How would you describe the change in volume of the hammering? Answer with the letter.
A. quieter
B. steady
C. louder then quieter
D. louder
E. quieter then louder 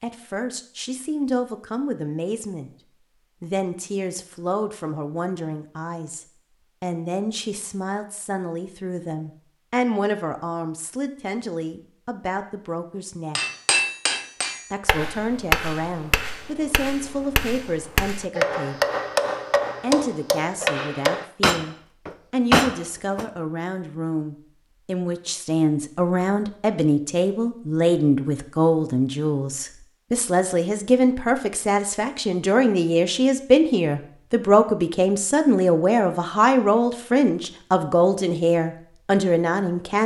E.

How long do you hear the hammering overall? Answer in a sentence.
The hammering can be heard for 10 seconds in total.